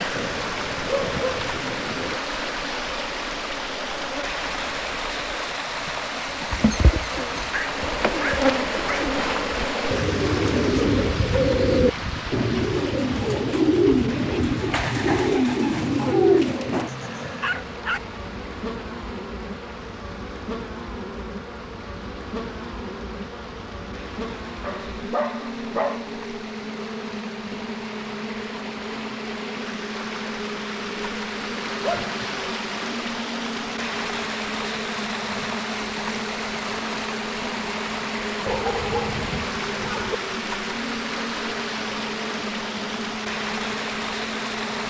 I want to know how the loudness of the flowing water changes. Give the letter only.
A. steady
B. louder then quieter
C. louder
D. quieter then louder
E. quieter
D.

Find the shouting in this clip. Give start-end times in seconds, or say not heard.
not heard.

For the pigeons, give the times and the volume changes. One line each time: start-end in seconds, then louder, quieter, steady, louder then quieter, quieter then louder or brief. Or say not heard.
6.5-16.9 louder.